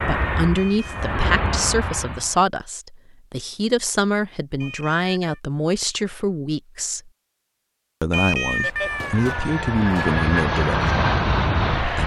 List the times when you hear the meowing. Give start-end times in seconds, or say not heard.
0.6-1.1, 4.6-5.4, 8.1-10.2.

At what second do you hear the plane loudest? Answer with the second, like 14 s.
11 s.